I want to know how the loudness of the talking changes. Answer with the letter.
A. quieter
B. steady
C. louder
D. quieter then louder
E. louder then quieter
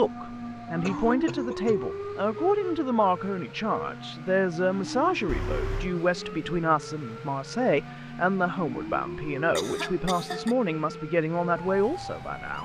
B.